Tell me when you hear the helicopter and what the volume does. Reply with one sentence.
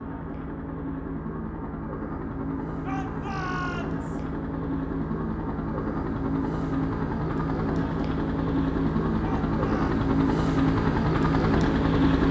You can hear the helicopter from 0.0 to 12.2 s, getting louder.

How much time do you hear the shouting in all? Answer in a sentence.
You can hear the shouting for 2 seconds altogether.